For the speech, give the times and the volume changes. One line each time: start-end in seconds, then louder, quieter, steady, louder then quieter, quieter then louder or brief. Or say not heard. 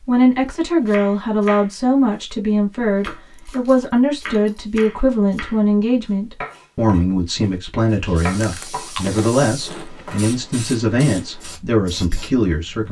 0.1-12.8 steady.